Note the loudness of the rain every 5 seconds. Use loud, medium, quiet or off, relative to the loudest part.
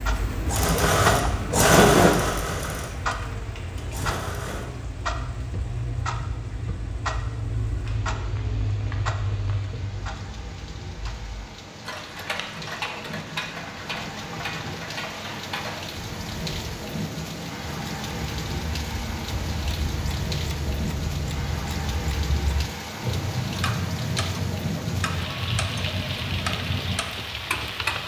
medium, quiet, medium, loud, loud, loud.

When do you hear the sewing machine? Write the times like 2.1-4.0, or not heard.
0.0-4.7.